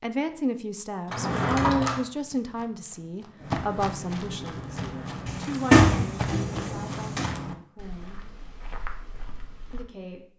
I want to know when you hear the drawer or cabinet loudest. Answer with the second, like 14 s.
6 s.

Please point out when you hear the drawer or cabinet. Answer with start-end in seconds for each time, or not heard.
1.1-2.0, 5.2-7.3.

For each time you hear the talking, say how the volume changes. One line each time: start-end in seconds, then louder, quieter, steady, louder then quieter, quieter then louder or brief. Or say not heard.
0.0-8.2 quieter
9.7-10.3 brief.